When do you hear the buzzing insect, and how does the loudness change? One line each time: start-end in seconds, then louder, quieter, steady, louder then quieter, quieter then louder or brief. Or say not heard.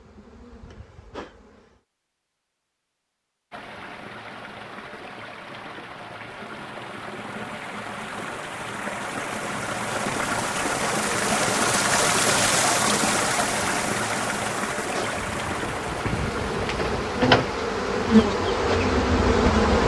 0.0-1.8 brief
14.9-19.8 louder.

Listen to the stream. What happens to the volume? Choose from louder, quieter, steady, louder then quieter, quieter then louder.
louder then quieter.